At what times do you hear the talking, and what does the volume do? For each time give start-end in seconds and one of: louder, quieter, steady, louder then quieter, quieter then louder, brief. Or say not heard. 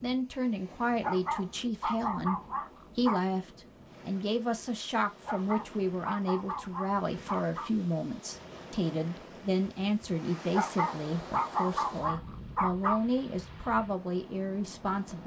0.0-15.2 steady.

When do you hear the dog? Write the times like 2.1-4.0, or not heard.
1.0-3.2, 5.2-7.7, 10.5-13.0.